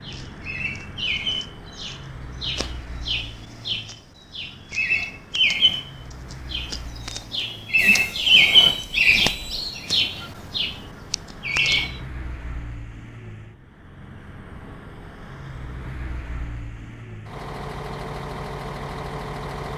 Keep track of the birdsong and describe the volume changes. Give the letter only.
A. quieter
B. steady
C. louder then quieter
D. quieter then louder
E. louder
C.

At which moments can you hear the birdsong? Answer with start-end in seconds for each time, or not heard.
0.0-12.0.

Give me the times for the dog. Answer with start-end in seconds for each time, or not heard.
not heard.